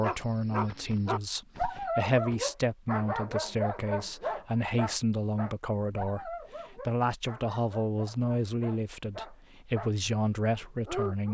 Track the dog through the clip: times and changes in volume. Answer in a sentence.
The dog can be heard from 0.0 to 9.9 s, getting quieter; and briefly from 10.5 to 11.2 s.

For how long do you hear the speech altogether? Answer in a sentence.
You can hear the speech for 11 seconds altogether.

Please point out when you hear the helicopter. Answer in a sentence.
The helicopter can't be heard in this clip.